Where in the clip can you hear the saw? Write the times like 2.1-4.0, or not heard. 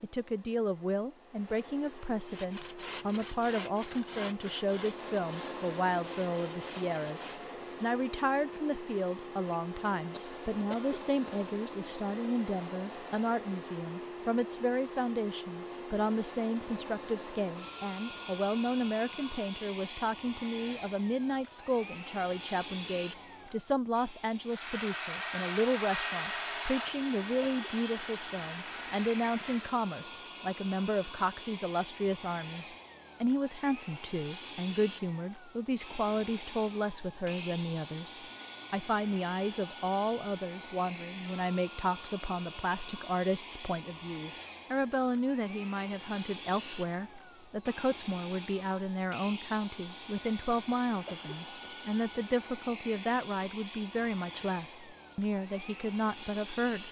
2.2-7.5, 24.5-29.8.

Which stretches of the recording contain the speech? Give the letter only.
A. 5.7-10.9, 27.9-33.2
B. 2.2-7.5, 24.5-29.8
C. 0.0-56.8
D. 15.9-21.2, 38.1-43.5
C.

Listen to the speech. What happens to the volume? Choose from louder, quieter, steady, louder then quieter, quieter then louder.
steady.